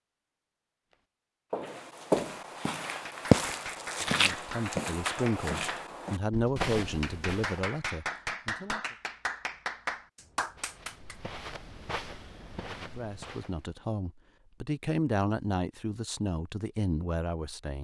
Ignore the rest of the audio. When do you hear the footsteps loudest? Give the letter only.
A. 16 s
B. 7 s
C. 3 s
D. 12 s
C.